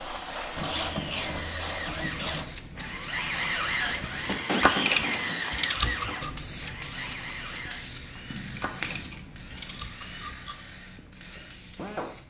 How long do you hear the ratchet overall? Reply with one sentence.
You can hear the ratchet for 6 seconds altogether.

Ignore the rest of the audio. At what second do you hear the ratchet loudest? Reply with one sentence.
The volume of the ratchet peaks at 5 seconds.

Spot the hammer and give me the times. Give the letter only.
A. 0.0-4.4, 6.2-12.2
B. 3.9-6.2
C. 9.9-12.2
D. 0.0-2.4
B.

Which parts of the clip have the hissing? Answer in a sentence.
The hissing can be heard from 0.0 to 4.4 s and from 6.2 to 12.2 s.